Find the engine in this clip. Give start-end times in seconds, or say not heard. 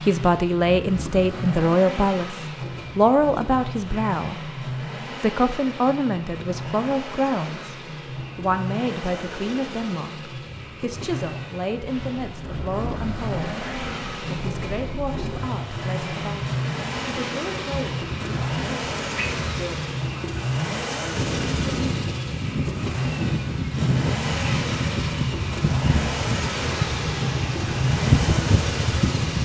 0.0-29.4.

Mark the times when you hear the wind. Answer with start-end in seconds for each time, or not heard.
12.2-29.4.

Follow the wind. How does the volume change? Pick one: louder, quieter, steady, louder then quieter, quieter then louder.
louder.